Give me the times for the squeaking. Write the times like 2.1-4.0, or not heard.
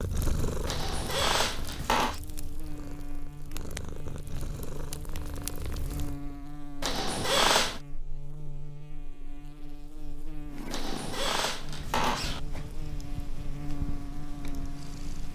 0.7-2.2, 6.8-7.8, 10.7-12.4.